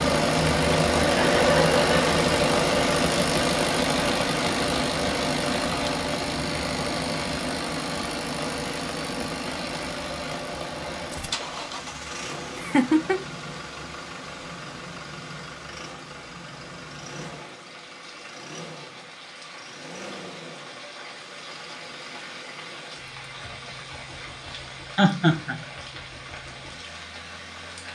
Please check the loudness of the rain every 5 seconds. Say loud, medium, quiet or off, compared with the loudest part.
loud, medium, medium, quiet, quiet, quiet.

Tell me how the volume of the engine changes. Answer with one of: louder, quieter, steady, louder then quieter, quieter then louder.
quieter.